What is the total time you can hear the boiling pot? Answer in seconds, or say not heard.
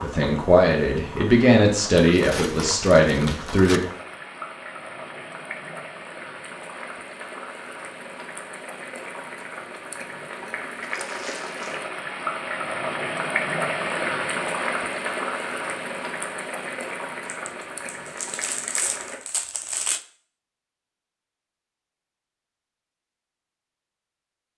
19 s.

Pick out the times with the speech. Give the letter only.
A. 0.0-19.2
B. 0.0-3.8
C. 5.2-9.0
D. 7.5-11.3
B.